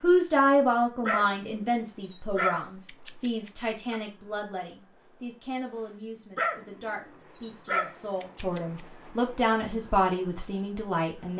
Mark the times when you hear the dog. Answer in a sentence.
The dog can be heard from 1.1 to 4.0 s and from 6.3 to 8.8 s.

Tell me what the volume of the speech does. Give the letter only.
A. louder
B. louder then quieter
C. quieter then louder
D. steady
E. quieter
C.